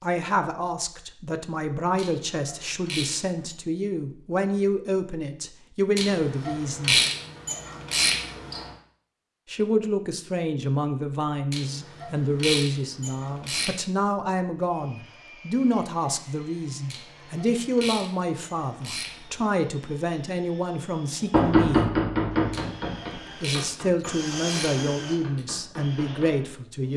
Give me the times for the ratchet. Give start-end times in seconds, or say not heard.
1.9-3.5, 6.0-8.7, 11.5-13.8, 16.9-19.4, 22.5-25.4.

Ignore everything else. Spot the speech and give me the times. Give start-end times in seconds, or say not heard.
0.0-7.0, 9.5-21.9, 23.4-26.9.